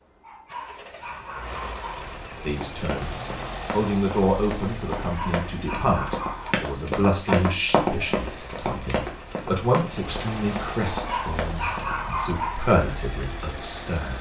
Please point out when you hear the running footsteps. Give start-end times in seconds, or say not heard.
2.4-11.9.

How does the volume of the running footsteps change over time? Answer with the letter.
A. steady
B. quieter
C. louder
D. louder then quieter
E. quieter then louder
D.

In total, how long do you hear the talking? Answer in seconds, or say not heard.
12 s.